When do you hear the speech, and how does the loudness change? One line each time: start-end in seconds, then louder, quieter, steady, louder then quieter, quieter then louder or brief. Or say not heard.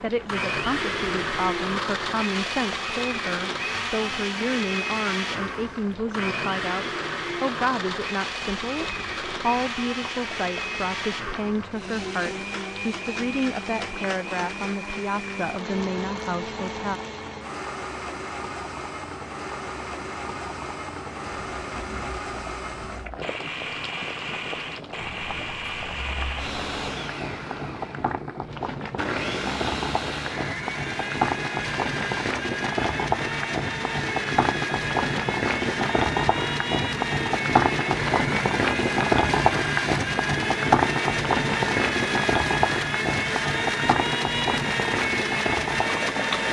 0.0-17.0 steady.